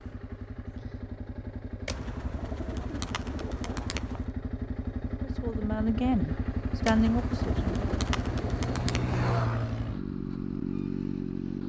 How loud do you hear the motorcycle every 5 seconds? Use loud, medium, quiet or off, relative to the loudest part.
medium, loud, loud.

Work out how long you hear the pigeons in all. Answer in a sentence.
You can hear the pigeons for 5 seconds altogether.